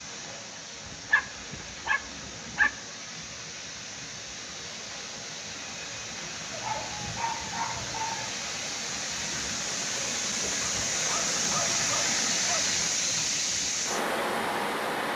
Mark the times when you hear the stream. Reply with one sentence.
The stream can be heard from 0.0 to 15.1 s.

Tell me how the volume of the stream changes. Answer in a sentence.
The volume of the stream goes up.